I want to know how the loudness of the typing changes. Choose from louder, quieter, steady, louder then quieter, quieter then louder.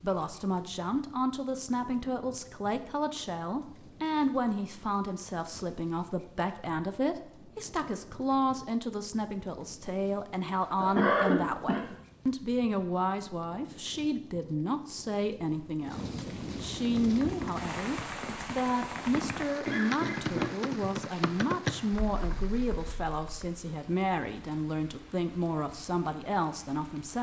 louder then quieter.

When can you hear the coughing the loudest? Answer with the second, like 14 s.
11 s.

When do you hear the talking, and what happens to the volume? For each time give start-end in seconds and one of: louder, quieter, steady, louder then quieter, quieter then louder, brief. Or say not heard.
0.0-27.1 steady.